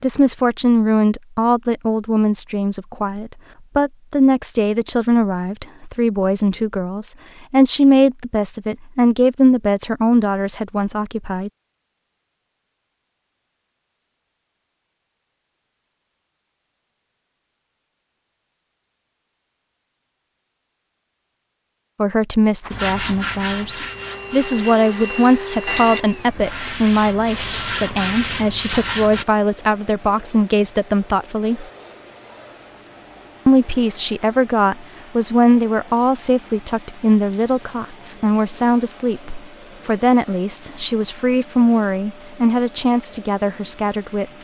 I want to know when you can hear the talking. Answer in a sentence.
You can hear the talking from 0.0 to 11.5 s, from 21.9 to 31.6 s and from 33.5 to 44.4 s.